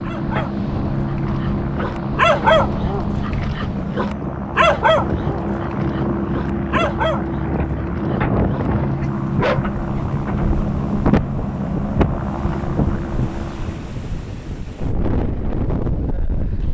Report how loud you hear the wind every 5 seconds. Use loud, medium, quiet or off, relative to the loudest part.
medium, loud, loud, loud.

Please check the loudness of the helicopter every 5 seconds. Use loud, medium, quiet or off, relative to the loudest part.
loud, loud, loud, off.